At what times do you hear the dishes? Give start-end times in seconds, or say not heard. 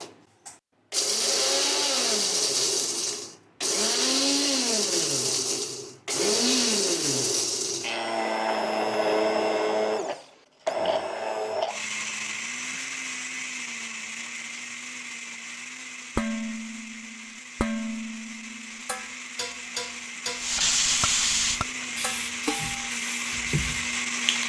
16.1-22.9.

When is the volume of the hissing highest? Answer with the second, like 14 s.
21 s.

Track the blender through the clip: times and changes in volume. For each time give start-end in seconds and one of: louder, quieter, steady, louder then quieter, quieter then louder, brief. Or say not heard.
0.0-24.4 quieter then louder.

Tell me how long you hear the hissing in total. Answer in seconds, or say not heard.
4 s.